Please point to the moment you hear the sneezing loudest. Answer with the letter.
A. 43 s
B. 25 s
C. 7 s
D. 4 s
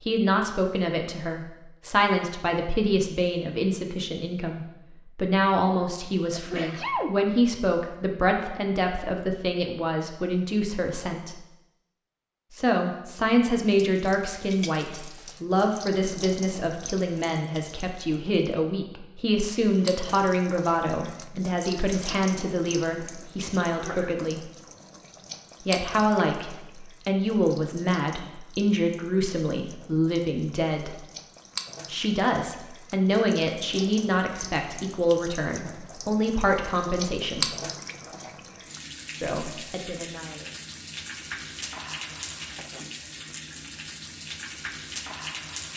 C.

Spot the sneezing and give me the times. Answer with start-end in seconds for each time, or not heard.
6.3-7.2, 23.7-24.2, 42.1-43.1.